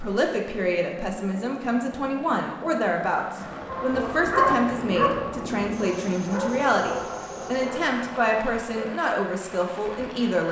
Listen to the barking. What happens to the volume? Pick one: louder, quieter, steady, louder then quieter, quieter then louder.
quieter.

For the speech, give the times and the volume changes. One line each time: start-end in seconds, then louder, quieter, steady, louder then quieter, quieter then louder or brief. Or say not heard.
0.0-10.4 steady.